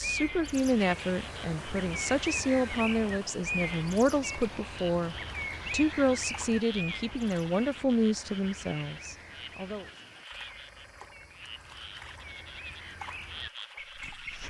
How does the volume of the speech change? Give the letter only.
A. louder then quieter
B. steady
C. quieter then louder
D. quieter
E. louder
B.